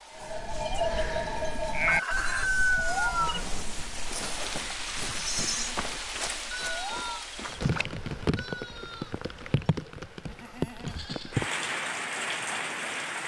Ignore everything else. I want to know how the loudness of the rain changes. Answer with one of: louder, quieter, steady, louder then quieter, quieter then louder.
louder.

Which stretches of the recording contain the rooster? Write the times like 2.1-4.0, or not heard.
1.9-3.4.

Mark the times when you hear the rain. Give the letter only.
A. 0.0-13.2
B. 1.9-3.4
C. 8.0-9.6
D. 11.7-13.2
A.